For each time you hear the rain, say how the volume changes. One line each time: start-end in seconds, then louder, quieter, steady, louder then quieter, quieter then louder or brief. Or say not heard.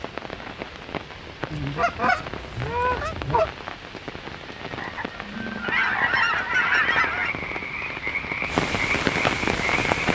0.0-10.1 louder.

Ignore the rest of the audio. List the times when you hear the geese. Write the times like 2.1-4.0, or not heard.
1.5-3.5, 5.6-7.3.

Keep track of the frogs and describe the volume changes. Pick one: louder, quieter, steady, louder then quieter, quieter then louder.
louder.